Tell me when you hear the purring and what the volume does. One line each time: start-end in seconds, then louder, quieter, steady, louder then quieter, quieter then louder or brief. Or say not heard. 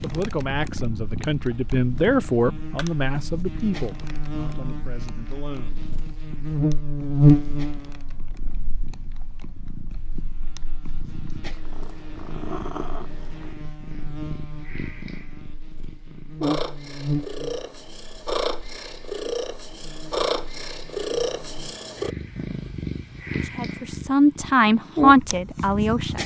0.0-26.2 quieter then louder.